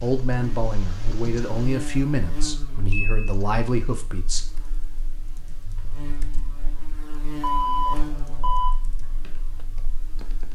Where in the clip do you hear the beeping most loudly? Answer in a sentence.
The volume of the beeping peaks at 8 seconds.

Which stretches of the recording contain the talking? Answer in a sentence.
The talking can be heard from 0.0 to 4.4 s.